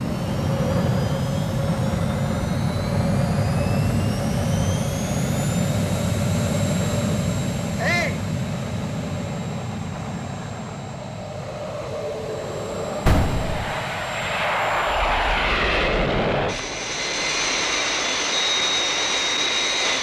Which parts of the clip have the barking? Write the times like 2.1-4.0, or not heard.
not heard.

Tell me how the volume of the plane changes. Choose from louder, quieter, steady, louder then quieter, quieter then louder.
quieter then louder.